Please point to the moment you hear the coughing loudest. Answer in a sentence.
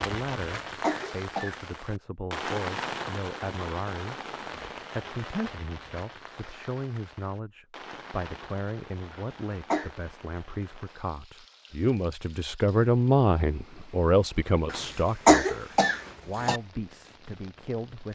The loudest moment of the coughing is at 15 seconds.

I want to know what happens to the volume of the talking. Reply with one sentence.
The volume of the talking goes up, then down.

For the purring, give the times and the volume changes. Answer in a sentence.
You can't hear the purring here.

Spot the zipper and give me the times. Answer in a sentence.
You can't hear the zipper here.